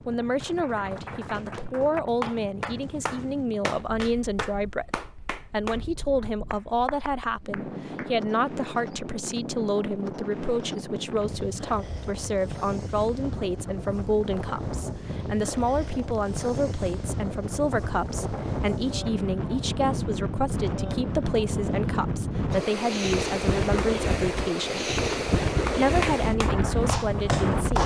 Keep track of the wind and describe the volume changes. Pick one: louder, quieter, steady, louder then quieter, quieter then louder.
louder.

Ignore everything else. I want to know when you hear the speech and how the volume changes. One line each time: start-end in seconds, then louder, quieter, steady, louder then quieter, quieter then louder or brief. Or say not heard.
0.1-24.9 steady
25.8-27.8 brief.